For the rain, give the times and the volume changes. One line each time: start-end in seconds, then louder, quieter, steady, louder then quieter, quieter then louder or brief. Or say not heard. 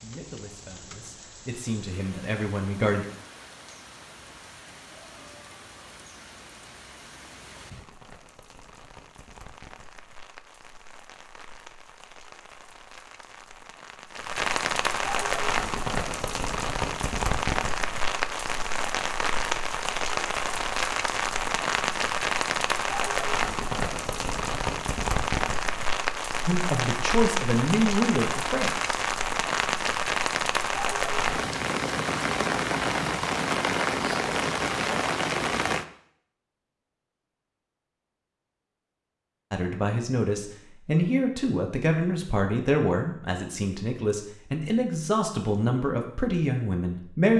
0.0-35.9 louder.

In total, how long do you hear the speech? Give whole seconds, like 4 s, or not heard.
13 s.